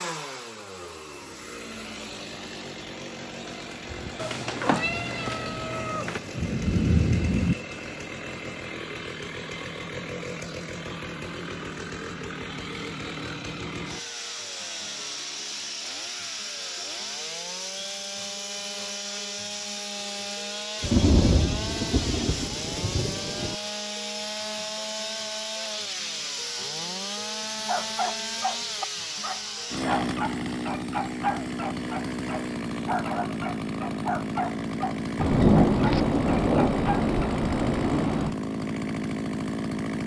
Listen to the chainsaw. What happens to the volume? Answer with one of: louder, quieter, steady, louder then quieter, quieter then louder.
louder.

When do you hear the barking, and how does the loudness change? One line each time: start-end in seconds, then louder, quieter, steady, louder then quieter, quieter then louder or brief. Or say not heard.
27.6-37.1 steady.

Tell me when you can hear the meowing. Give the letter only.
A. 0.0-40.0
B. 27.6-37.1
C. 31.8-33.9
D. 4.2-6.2
D.